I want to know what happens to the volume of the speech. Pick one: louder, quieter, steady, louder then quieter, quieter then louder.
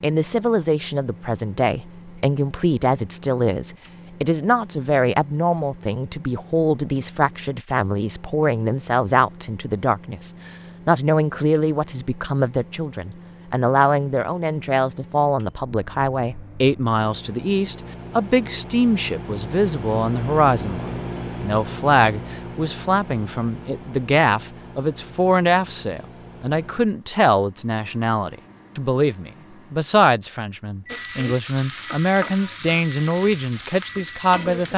steady.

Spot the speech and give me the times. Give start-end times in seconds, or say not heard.
0.0-34.7.